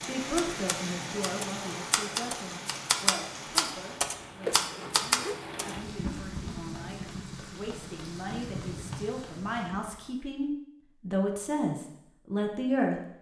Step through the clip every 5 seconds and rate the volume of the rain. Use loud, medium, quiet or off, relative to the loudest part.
loud, loud, off.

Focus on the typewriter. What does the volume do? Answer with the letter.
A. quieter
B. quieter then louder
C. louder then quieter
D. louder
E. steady
D.